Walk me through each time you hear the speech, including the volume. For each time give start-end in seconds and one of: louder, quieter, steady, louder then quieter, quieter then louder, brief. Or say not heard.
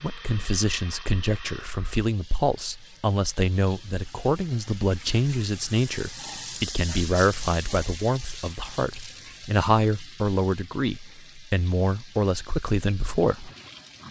0.0-13.5 steady.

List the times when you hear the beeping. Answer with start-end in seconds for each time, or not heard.
not heard.